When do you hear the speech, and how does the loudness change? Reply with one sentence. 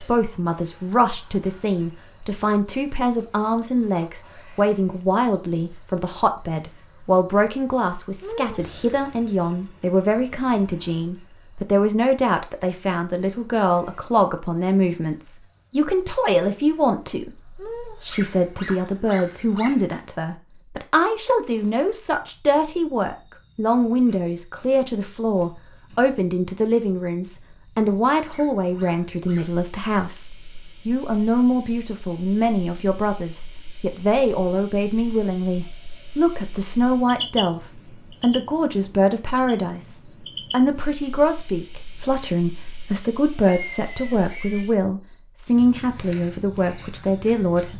The speech can be heard from 0.0 to 47.7 s, at a steady volume.